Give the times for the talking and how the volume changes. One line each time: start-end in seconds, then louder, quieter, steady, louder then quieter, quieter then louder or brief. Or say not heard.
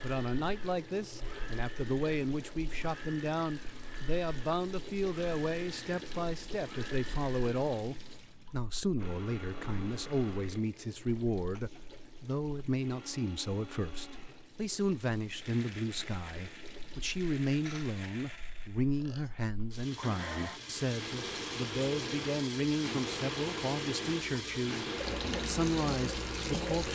0.0-26.8 steady.